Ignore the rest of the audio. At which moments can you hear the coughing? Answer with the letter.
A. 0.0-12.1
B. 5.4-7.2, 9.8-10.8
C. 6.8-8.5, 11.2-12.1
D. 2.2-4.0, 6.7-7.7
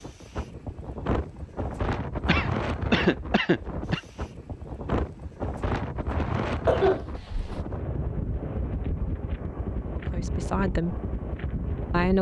D.